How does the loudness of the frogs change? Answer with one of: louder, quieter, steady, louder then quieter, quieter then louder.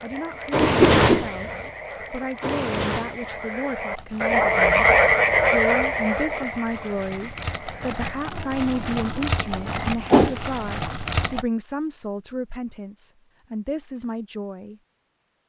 louder then quieter.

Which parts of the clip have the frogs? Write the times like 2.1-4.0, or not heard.
0.0-9.7.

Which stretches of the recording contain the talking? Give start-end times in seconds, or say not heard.
0.0-4.8, 5.5-14.8.